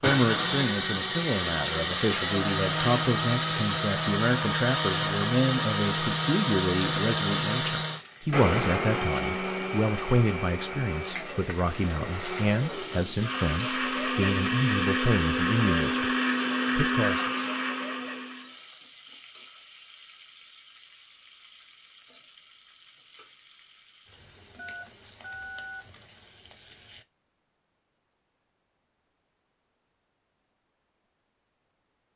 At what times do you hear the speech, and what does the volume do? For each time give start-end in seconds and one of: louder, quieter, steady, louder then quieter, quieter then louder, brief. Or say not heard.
0.0-16.1 steady
16.8-17.2 brief.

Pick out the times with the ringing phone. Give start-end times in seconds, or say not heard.
24.6-25.9.